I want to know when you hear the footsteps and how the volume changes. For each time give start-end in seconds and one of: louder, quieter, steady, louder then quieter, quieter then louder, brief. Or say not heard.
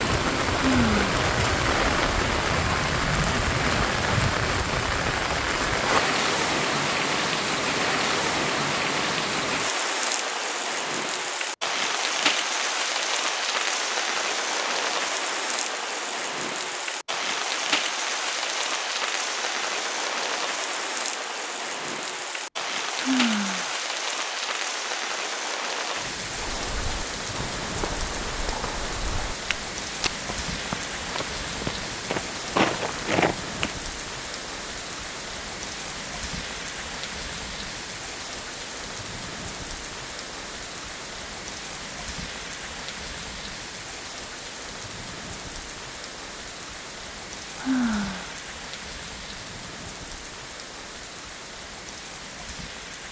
26.4-33.8 louder.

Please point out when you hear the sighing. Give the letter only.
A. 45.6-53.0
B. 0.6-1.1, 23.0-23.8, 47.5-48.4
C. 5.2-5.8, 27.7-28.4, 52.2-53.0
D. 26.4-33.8
B.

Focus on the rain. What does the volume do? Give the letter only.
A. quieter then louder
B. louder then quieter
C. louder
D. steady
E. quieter
E.